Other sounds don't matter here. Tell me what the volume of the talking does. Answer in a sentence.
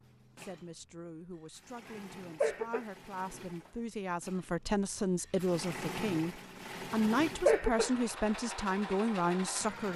The volume of the talking goes up.